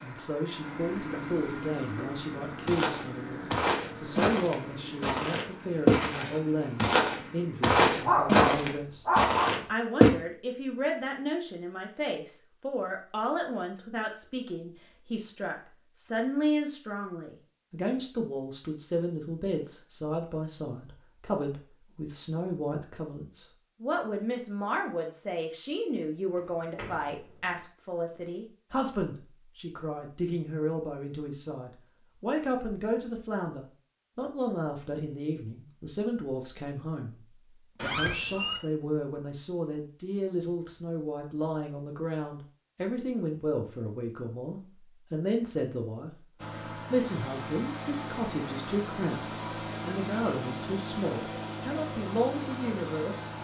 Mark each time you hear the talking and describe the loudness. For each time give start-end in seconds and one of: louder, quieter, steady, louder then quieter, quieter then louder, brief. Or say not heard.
0.0-46.2 steady
46.9-53.2 steady.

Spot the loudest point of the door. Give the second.
38 s.